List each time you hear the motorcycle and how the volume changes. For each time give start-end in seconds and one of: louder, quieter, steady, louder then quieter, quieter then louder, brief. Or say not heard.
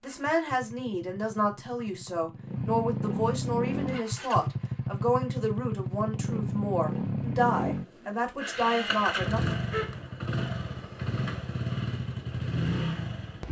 0.0-13.4 louder.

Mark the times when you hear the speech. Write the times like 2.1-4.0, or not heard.
0.0-9.6.